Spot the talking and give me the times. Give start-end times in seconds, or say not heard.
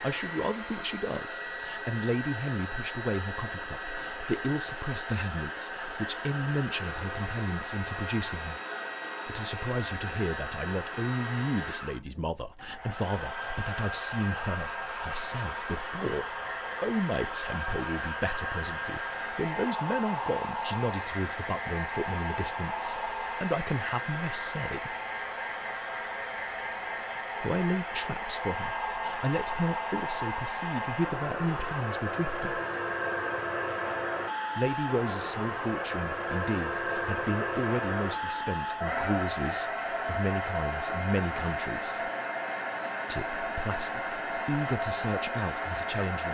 0.0-8.6, 9.2-24.9, 27.4-32.6, 34.5-42.1, 43.0-46.2.